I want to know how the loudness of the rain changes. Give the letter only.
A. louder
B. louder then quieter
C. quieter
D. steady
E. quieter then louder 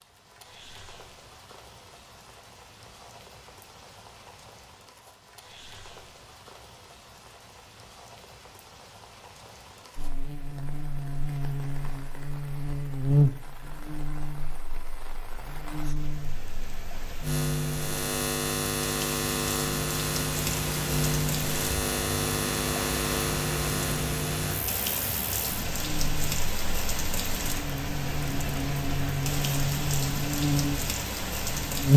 A.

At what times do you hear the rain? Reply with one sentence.
The rain can be heard from 0.0 to 31.9 s.